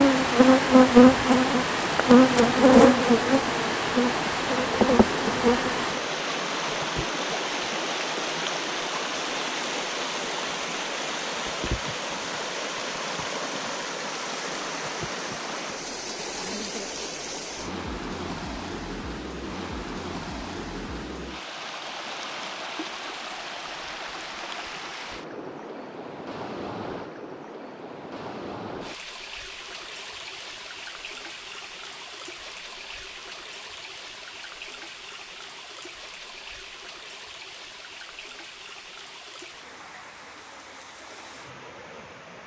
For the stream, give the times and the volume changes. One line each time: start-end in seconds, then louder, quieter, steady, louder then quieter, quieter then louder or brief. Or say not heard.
0.0-42.4 quieter.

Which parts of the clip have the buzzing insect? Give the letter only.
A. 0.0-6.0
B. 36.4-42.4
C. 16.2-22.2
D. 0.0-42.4
A.